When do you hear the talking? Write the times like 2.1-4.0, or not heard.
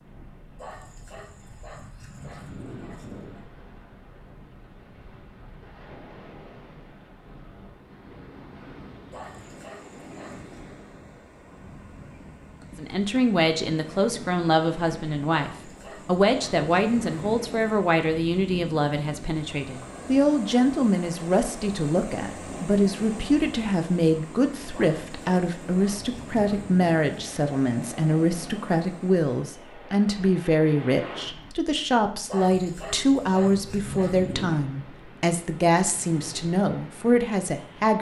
12.8-37.9.